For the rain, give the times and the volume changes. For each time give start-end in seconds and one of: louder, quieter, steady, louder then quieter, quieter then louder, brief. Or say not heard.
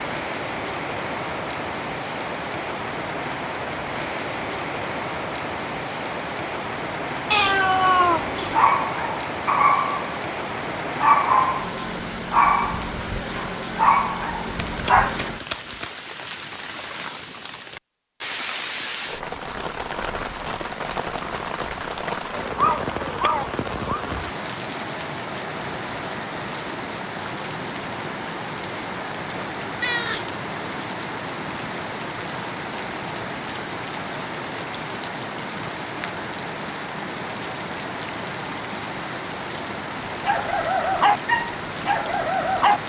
0.0-42.8 steady.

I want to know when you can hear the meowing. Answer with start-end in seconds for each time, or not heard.
7.3-8.7, 22.6-24.0, 29.8-30.2.